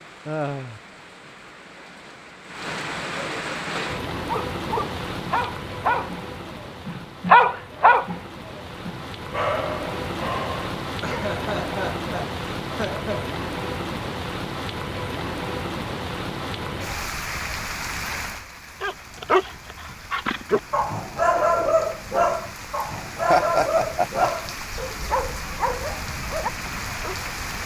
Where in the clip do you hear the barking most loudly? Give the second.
7 s.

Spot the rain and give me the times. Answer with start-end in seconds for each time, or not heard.
0.0-27.6.